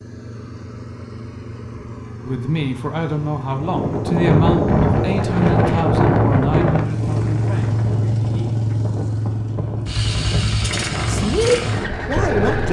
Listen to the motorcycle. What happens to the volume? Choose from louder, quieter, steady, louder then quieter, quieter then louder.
louder.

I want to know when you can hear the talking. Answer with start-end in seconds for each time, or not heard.
2.2-8.5, 11.1-12.6.